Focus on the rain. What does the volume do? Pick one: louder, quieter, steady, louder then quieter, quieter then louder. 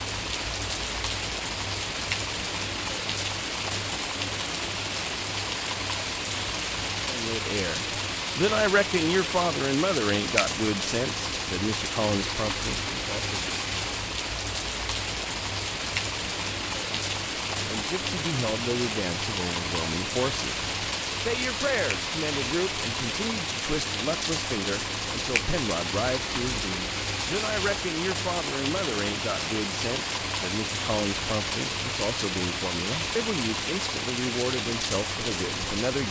steady.